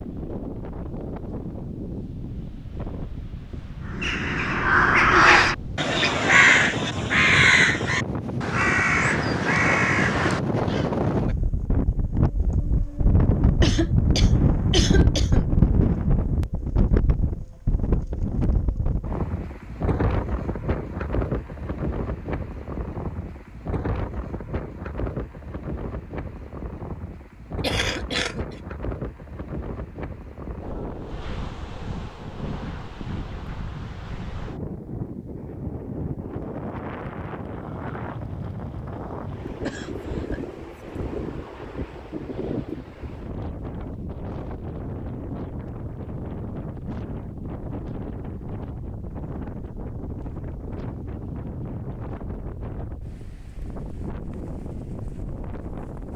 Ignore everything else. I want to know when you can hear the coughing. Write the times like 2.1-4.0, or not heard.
13.6-15.5, 27.6-28.6, 39.6-40.4.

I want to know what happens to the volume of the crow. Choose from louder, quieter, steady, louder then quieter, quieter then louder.
quieter.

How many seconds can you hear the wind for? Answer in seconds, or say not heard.
56 s.